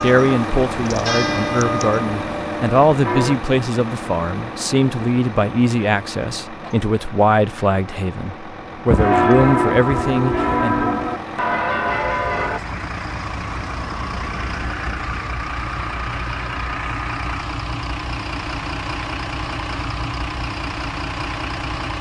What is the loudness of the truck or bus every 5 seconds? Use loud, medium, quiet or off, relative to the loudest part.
loud, medium, loud, loud, loud.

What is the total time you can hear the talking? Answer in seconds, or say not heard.
11 s.